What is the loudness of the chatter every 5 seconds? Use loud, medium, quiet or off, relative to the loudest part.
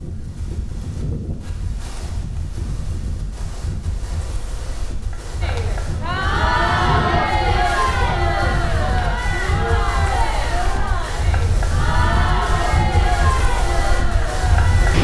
off, loud, loud.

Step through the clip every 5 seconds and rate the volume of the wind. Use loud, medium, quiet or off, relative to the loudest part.
medium, loud, loud.